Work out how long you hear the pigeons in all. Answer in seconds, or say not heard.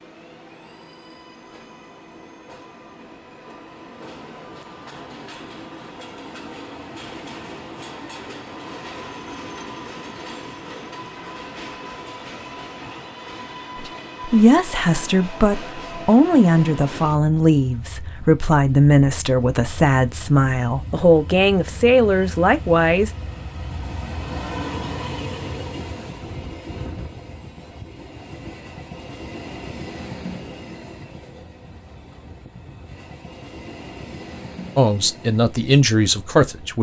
not heard.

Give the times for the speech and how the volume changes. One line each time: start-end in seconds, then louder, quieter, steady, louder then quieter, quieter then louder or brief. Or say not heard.
13.8-23.1 steady
34.8-36.7 brief.